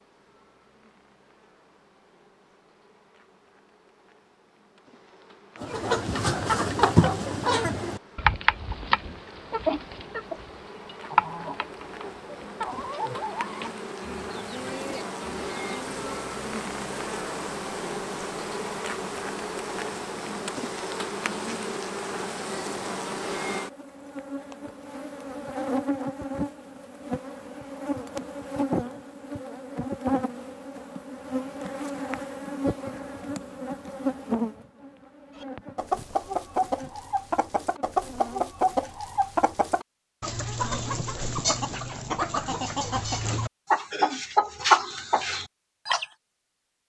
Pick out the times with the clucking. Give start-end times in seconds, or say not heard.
5.6-16.0, 35.4-46.0.